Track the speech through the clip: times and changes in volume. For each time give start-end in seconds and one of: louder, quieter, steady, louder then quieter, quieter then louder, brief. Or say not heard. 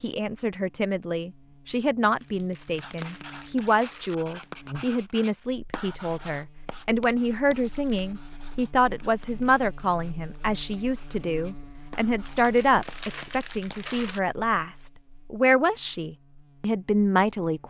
0.0-17.6 steady.